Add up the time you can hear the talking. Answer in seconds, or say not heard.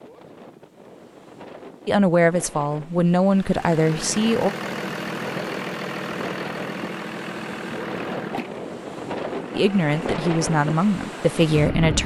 5 s.